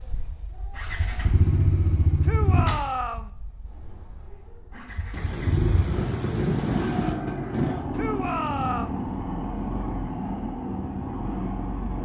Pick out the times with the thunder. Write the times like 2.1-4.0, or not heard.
5.1-7.2.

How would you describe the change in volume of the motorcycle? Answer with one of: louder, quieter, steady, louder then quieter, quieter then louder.
quieter then louder.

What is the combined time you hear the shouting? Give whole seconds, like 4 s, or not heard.
2 s.